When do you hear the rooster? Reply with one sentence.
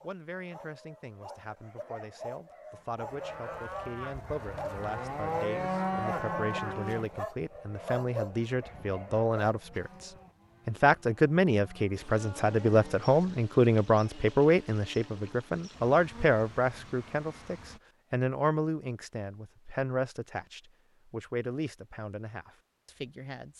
The rooster can't be heard in this clip.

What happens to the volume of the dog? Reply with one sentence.
The volume of the dog goes up.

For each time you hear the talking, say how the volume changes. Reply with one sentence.
You can hear the talking from 0.0 to 23.5 s, getting louder then quieter.